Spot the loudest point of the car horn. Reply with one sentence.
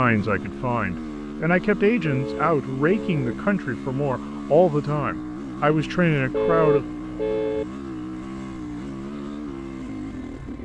The loudest moment of the car horn is at 7 seconds.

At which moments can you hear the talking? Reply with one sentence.
The talking can be heard from 0.0 to 6.8 s.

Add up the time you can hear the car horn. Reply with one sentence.
You can hear the car horn for 3 seconds altogether.